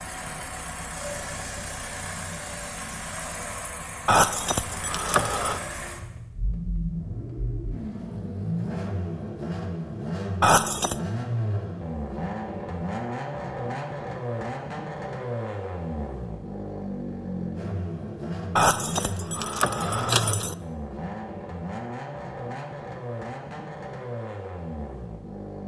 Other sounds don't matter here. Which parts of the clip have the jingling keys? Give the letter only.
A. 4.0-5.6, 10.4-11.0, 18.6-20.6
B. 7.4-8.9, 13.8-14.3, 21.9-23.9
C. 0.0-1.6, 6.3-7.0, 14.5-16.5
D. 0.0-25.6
A.